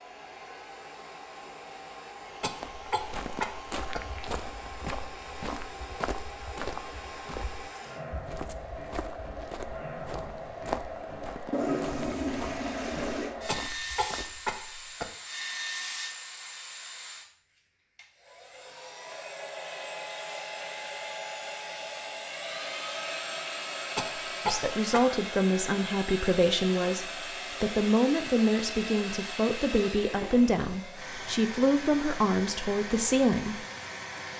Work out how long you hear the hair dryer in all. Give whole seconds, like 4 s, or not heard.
34 s.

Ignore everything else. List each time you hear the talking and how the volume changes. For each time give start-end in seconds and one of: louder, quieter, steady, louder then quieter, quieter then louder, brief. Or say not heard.
24.4-33.6 steady.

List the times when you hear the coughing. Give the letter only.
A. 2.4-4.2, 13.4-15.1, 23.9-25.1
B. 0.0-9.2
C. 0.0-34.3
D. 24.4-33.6
A.